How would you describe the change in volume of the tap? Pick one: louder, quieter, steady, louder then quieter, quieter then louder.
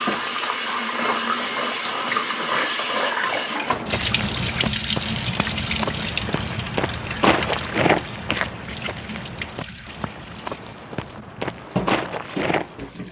quieter.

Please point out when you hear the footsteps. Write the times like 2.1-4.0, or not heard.
3.6-12.9.